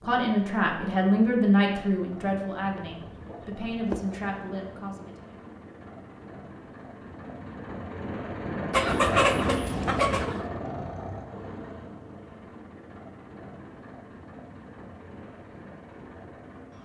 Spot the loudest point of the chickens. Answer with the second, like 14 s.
9 s.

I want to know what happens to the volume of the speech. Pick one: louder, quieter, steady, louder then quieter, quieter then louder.
quieter.